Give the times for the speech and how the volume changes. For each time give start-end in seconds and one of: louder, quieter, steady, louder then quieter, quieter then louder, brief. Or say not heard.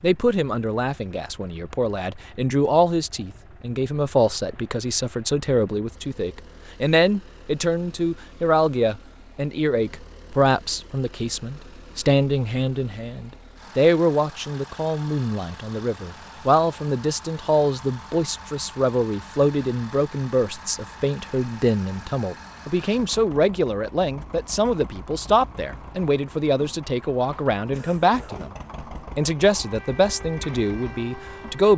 0.0-28.5 steady
29.1-31.7 brief.